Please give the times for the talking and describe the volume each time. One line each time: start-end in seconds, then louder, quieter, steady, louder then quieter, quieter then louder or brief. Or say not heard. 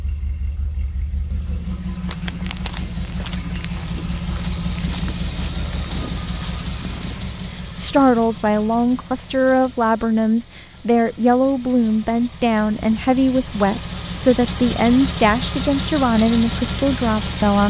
7.8-17.6 steady.